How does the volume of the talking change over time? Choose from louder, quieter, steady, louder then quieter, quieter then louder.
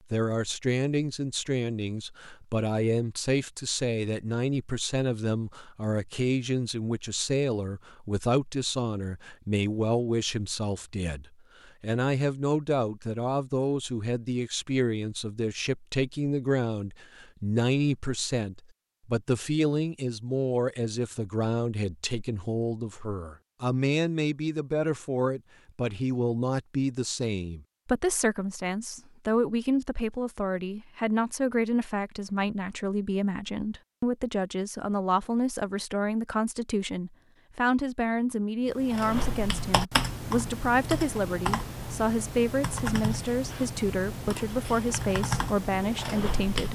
steady.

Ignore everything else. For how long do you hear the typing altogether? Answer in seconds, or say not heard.
8 s.